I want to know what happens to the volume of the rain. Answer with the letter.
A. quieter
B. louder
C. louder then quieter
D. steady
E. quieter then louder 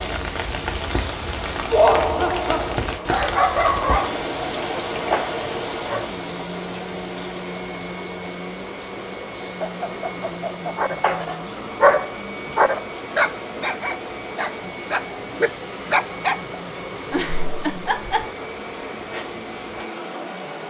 A.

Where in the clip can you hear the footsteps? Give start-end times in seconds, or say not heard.
not heard.